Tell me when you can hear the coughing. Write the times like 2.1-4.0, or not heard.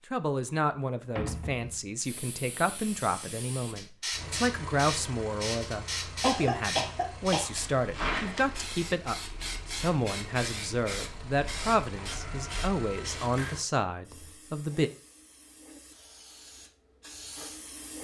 6.2-7.6.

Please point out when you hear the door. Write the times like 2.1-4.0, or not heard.
1.1-1.9.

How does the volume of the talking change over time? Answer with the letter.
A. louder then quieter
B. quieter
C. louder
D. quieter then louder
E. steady
E.